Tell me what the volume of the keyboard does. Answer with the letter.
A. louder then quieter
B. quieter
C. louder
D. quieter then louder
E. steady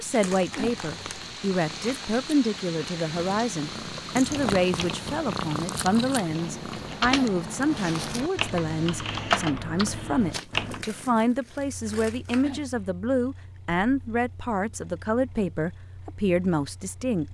C.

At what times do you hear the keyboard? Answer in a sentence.
You can hear the keyboard from 4.0 to 10.8 s.